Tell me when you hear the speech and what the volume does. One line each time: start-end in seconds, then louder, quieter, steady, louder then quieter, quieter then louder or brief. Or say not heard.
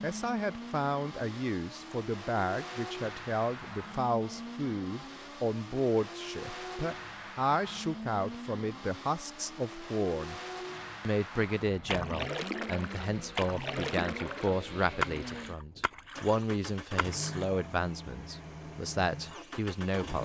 0.0-10.4 steady
11.0-20.2 steady.